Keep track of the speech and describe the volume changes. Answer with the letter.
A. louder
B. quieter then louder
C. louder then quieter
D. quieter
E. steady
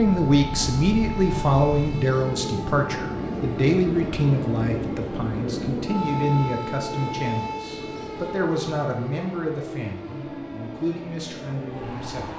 D.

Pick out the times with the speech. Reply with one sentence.
You can hear the speech from 0.0 to 12.3 s.